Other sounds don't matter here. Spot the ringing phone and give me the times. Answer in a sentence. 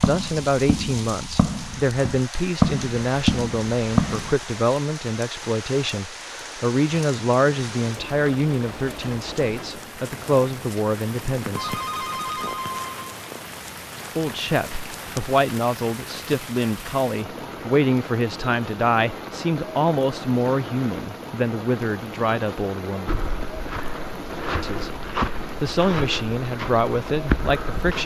You can hear the ringing phone from 11.6 to 13.1 s.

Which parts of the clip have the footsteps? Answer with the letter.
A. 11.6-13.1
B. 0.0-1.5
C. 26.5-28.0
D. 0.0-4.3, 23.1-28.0
D.